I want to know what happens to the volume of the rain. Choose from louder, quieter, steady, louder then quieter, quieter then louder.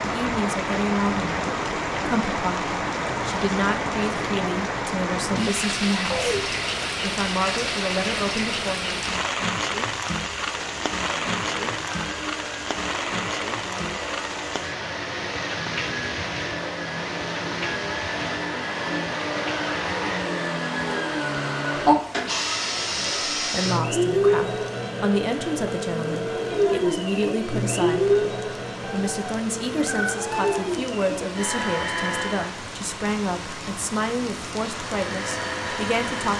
quieter then louder.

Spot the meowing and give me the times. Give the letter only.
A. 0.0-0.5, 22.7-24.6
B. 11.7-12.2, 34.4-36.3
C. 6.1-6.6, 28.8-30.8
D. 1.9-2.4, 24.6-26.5
C.